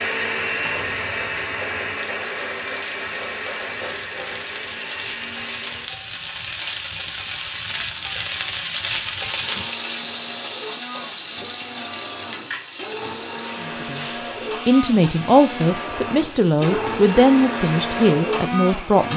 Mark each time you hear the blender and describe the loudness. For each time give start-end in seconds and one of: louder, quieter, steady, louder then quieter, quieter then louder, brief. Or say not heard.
0.0-5.9 quieter
9.3-19.1 louder.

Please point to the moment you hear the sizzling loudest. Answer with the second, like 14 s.
9 s.